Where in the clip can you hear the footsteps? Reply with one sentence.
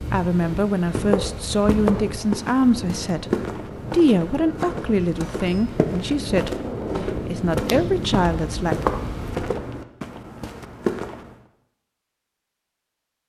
You can hear the footsteps from 0.9 to 11.3 s.